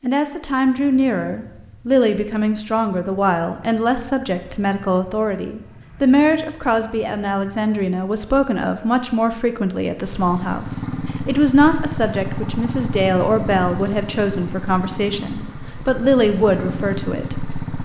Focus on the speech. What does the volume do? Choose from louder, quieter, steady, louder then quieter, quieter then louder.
steady.